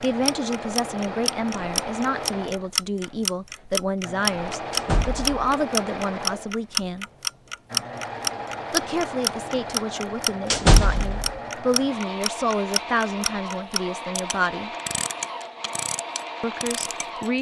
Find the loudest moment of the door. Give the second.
11 s.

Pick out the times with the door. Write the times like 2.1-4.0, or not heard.
4.7-5.3, 10.5-11.3.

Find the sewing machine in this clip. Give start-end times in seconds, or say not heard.
0.0-17.3.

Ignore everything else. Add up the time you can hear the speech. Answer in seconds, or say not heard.
14 s.